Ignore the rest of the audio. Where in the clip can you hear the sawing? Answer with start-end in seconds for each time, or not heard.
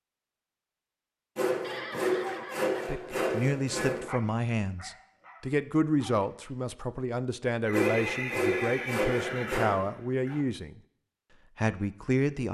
1.4-4.1, 7.7-9.8.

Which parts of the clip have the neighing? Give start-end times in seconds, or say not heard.
1.6-3.2, 7.7-10.4.